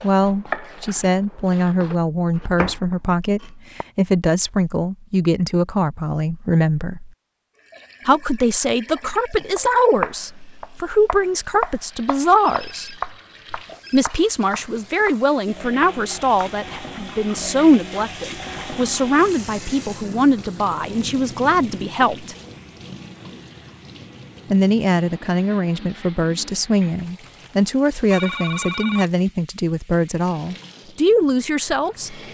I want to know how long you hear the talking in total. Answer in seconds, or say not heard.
28 s.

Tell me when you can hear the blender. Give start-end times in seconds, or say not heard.
not heard.